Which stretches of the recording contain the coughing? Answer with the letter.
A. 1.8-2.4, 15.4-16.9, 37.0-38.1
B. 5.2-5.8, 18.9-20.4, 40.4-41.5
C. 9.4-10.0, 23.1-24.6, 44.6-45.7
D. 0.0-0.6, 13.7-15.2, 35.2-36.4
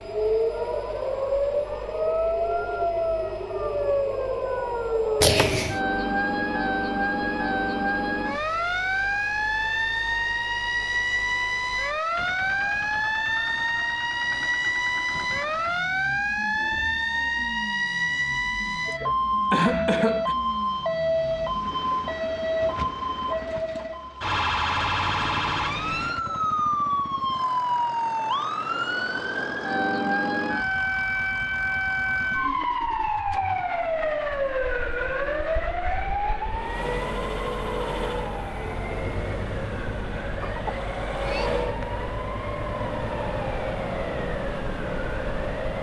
B.